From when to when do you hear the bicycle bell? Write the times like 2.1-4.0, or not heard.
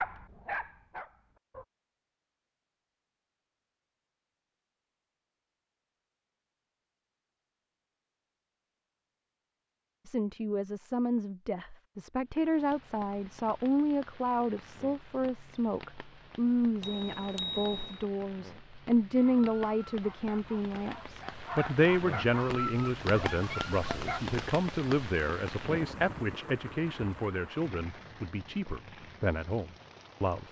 16.8-18.1.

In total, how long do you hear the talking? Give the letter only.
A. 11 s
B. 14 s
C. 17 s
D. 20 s
D.